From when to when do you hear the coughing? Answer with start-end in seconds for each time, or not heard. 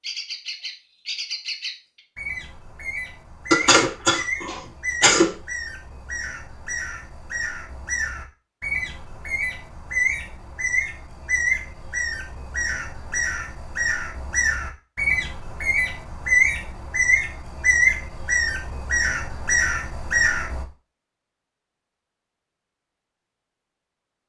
3.5-5.3.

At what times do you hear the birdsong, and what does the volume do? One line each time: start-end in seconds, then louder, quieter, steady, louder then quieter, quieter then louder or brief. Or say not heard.
0.0-20.6 louder.